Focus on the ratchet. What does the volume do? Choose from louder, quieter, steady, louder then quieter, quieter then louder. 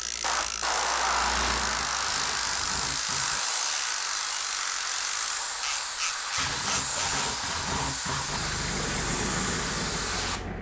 steady.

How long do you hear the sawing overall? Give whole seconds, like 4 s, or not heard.
4 s.